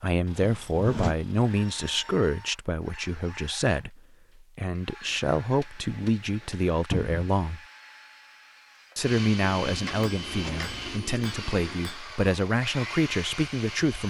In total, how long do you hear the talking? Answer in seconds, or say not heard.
13 s.